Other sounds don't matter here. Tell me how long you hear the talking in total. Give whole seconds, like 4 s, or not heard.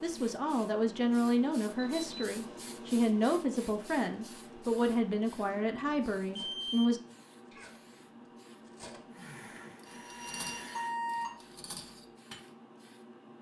7 s.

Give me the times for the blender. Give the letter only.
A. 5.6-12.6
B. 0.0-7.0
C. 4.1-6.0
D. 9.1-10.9
D.